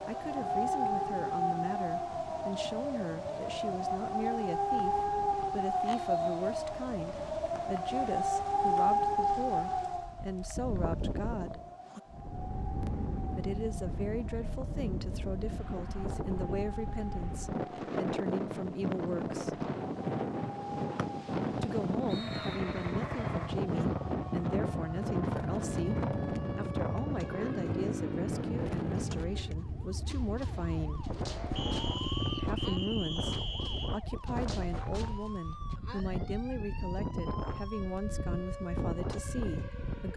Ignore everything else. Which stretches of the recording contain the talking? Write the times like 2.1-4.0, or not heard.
0.1-11.6, 13.3-19.6, 21.5-31.1, 32.4-40.1.